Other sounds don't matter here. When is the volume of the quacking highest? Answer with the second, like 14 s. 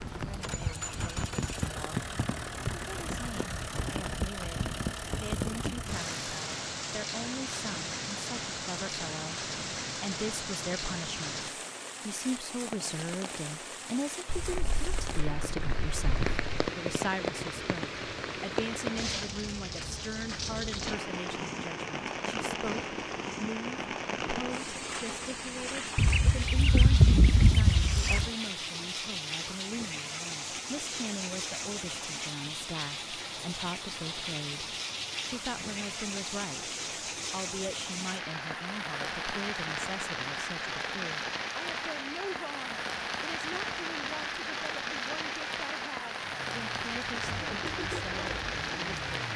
27 s.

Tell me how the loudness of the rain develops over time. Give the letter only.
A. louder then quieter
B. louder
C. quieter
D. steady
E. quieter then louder
D.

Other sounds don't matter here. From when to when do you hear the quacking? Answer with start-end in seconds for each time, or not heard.
14.2-16.7, 25.9-28.3.